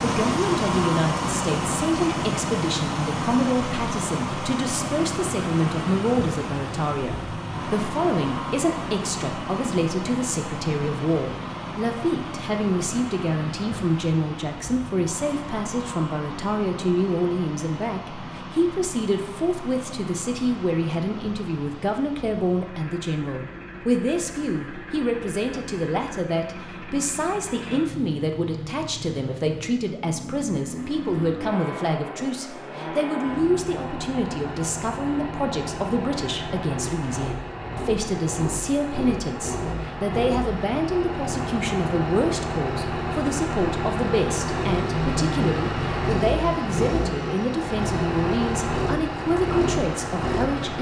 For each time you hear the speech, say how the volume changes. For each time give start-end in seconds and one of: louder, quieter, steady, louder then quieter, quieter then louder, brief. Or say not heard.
0.0-50.7 steady.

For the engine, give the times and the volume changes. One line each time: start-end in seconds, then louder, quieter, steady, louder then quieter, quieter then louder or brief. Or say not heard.
0.0-50.7 quieter then louder.